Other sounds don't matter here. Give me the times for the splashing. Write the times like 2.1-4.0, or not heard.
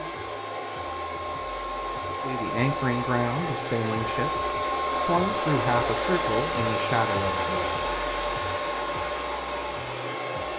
not heard.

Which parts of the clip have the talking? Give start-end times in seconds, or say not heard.
2.0-7.7.